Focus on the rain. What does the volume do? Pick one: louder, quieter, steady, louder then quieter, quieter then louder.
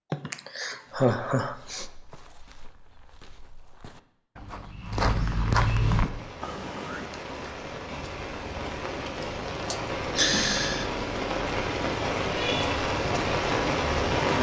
louder.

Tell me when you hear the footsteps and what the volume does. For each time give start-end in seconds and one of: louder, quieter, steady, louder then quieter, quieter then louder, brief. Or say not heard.
0.8-6.1 louder.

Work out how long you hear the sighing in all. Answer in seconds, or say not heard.
4 s.